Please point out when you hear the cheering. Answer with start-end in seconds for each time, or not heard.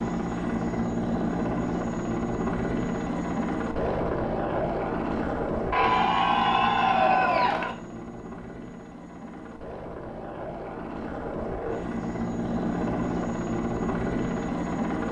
5.7-7.8.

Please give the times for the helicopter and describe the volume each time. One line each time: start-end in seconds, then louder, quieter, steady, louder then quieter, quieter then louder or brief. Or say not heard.
0.0-15.0 quieter then louder.